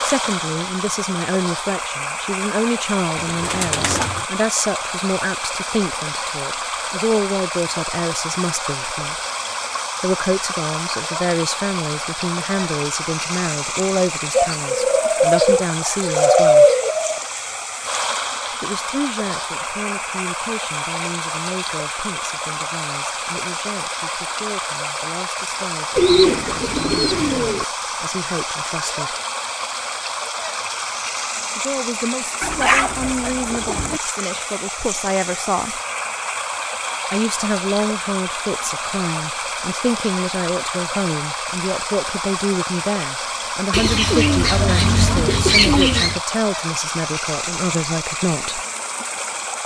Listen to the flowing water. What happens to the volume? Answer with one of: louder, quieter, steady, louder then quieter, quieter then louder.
steady.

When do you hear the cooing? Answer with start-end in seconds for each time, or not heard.
3.1-4.2, 14.3-17.2, 25.9-27.6, 32.4-34.0, 43.7-46.2.